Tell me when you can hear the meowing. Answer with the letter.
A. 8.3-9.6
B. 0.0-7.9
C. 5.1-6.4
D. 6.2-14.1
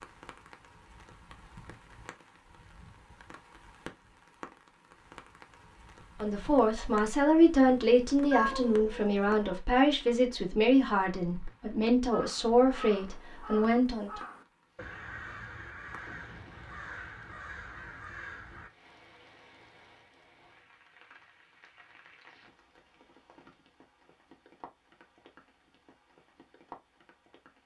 A.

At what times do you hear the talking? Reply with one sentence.
You can hear the talking from 6.2 to 14.1 s.